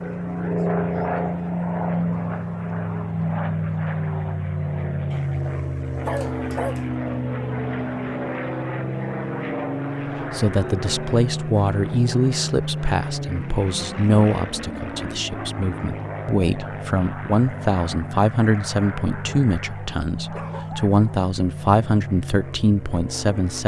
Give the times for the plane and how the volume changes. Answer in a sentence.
The plane can be heard from 0.0 to 23.6 s, getting quieter.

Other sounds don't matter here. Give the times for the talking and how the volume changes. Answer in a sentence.
You can hear the talking from 10.3 to 23.6 s, at a steady volume.